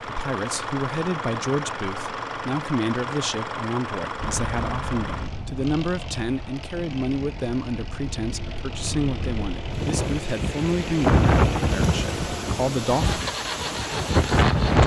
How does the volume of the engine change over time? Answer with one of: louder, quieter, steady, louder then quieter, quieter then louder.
quieter then louder.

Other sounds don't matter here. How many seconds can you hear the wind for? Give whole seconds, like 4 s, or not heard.
11 s.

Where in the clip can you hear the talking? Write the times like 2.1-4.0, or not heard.
0.0-13.2.